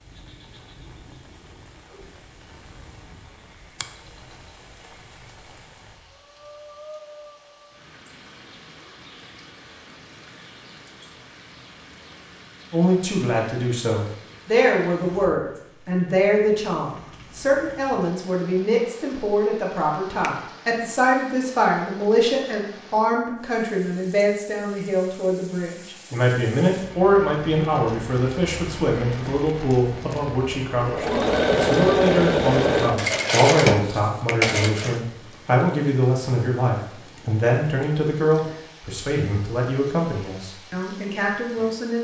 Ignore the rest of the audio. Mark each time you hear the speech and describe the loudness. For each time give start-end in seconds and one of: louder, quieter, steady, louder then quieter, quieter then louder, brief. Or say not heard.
12.7-41.9 steady.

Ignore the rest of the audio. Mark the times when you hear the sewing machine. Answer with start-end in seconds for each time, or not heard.
29.2-35.0.